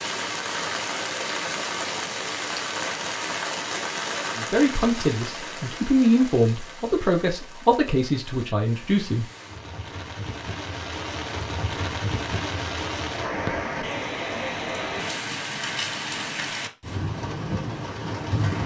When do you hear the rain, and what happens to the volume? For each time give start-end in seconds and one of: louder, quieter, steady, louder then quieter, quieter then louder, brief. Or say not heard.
0.0-18.6 quieter then louder.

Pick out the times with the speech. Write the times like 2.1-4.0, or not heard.
4.3-9.2.